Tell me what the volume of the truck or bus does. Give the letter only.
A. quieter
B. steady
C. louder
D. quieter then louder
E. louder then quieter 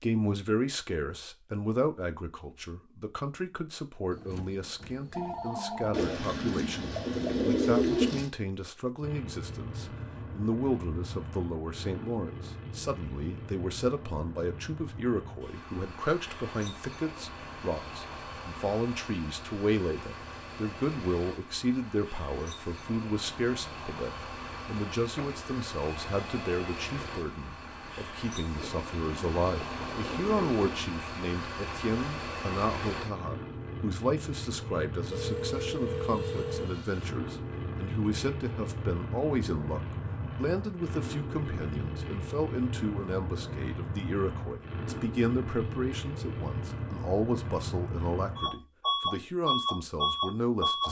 C.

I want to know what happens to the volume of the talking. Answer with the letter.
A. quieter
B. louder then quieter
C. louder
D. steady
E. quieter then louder
D.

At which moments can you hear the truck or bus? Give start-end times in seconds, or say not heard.
9.0-50.8.